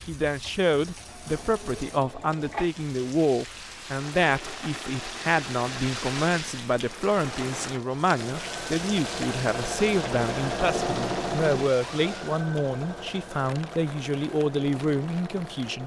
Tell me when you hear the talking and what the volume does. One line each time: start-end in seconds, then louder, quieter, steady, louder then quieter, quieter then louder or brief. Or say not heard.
0.1-15.8 steady.